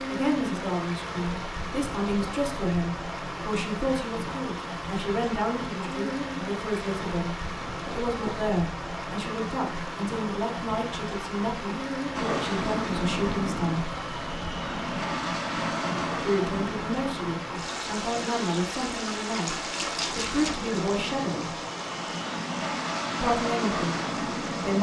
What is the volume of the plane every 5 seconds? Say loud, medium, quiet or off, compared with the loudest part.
off, off, loud, loud, loud.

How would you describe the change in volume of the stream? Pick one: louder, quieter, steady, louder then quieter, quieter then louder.
steady.